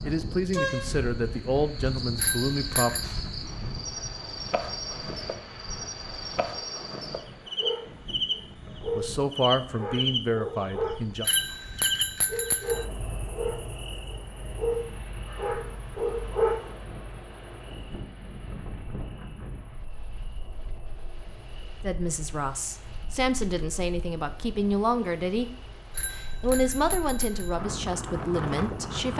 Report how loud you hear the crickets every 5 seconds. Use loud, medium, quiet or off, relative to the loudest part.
loud, loud, loud, quiet, quiet, quiet.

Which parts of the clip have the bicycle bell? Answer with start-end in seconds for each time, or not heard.
2.1-3.0, 11.2-12.8, 25.9-27.6.